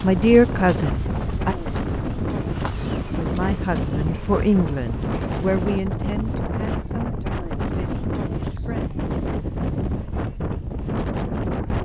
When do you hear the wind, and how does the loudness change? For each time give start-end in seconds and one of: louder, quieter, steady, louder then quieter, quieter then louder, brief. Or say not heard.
0.0-11.8 steady.